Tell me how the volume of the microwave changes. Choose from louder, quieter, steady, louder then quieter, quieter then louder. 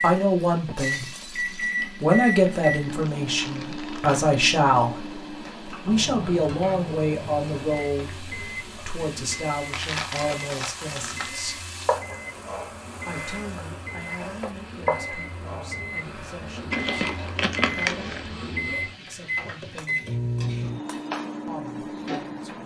quieter then louder.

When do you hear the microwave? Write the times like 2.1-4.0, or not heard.
0.0-22.6.